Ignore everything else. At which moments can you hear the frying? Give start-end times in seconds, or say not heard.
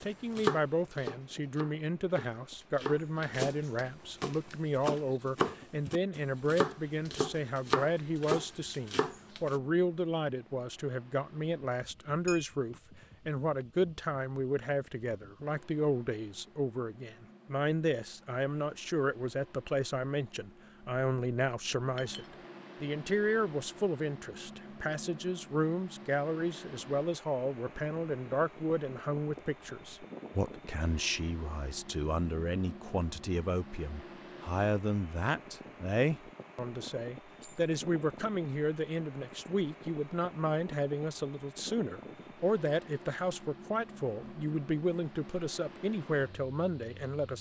not heard.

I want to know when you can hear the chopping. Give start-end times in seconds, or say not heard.
0.0-9.6.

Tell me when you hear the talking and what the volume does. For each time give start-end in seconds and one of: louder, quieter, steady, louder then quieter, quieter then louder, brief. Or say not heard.
0.0-47.3 steady.